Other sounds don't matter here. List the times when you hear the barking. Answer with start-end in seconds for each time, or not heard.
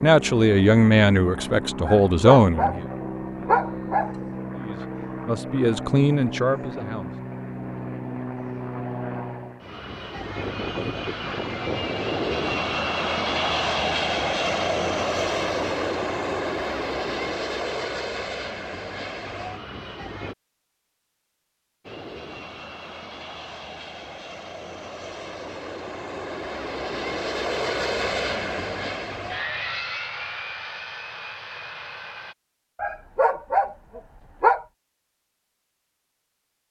1.9-4.2, 32.8-34.6.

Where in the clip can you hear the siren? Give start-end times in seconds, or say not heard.
not heard.